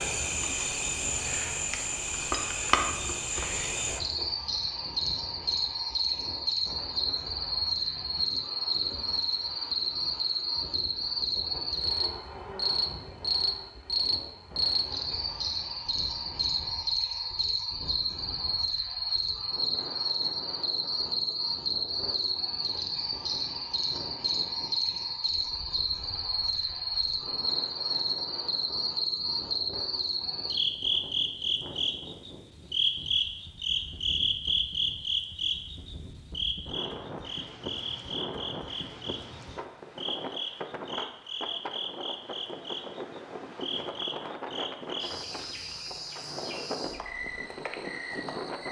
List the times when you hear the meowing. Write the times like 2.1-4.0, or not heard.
not heard.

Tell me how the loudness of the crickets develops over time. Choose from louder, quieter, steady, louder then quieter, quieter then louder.
quieter.